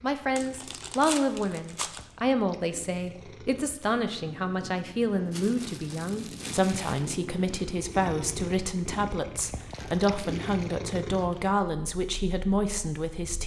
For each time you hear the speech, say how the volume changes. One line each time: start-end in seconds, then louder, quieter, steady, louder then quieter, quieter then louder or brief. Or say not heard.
0.0-13.4 steady.